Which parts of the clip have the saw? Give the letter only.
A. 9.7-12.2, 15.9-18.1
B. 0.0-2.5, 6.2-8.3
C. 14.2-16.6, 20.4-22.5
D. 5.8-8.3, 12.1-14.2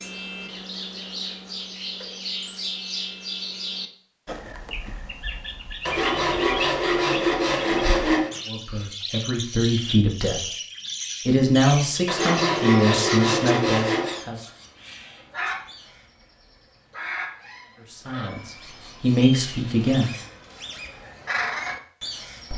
D.